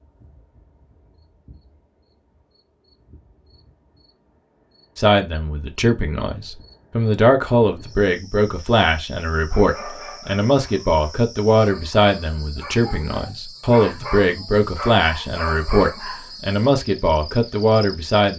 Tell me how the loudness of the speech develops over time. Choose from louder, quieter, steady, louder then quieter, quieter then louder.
steady.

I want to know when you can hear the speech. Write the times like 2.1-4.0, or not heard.
5.0-18.3.